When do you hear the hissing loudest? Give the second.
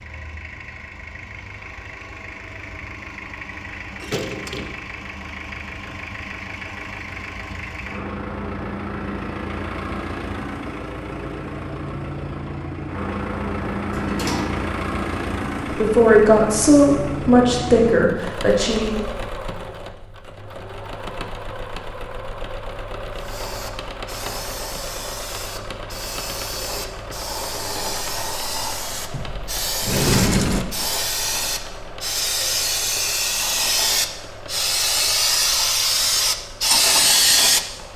37 s.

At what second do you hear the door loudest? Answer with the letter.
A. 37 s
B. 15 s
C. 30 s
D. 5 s
C.